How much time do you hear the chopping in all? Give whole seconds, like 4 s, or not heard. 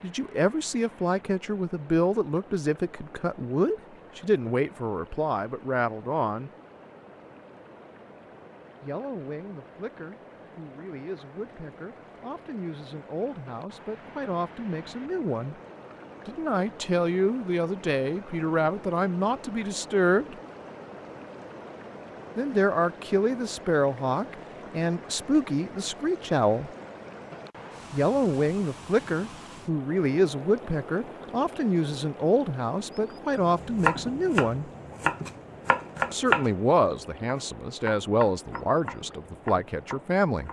7 s.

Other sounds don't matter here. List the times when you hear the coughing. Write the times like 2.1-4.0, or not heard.
not heard.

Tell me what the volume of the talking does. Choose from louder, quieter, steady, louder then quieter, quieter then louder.
quieter then louder.